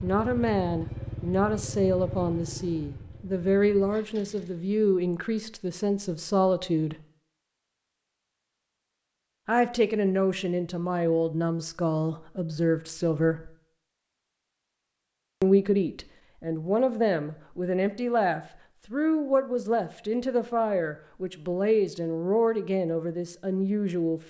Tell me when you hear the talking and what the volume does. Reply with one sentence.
You can hear the talking from 0.0 to 7.0 s, at a steady volume; from 9.4 to 13.5 s, at a steady volume; and from 15.4 to 24.2 s, at a steady volume.